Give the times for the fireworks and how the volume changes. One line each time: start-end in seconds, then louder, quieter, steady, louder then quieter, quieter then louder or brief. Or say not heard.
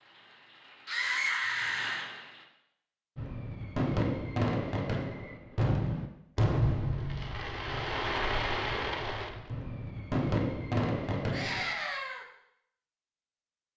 3.1-11.7 steady.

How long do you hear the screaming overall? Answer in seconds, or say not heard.
2 s.